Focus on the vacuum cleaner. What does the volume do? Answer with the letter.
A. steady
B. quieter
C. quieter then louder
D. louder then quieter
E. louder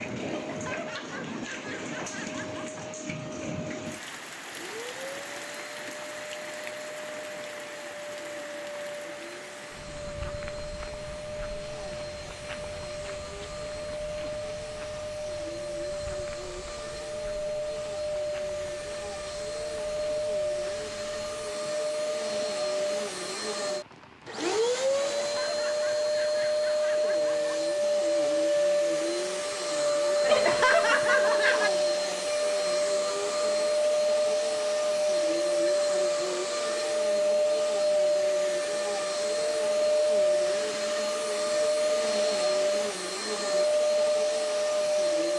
E.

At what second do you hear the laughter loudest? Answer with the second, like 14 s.
31 s.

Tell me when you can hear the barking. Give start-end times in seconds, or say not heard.
not heard.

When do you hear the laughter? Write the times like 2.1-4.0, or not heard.
0.2-2.8, 25.0-27.6, 30.2-31.7.